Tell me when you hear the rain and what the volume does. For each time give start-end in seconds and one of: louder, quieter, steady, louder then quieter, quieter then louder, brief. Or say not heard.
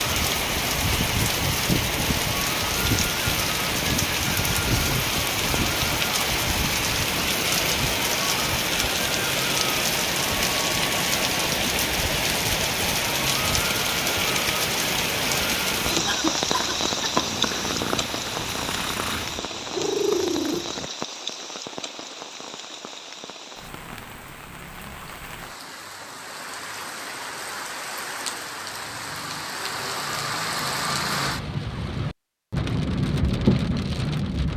0.0-34.5 quieter then louder.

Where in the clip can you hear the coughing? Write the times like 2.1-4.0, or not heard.
not heard.